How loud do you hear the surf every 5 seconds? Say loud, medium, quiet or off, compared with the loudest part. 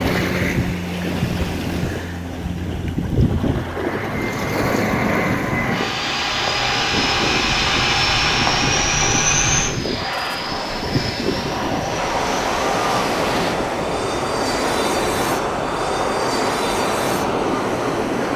loud, medium, loud, loud.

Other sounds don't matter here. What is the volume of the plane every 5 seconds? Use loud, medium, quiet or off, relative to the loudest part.
medium, loud, medium, medium.